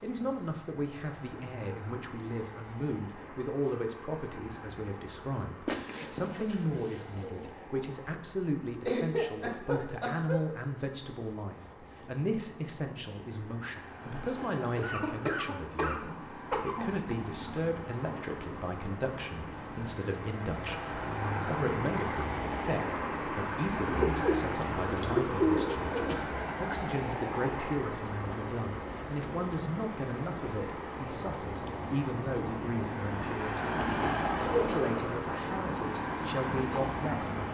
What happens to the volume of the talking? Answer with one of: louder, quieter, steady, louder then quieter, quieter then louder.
steady.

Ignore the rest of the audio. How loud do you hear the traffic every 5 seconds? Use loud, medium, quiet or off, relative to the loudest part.
quiet, quiet, quiet, medium, loud, loud, loud, loud.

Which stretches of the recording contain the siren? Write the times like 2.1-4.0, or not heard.
not heard.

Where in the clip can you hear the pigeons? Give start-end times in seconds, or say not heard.
5.7-7.5, 23.9-26.4.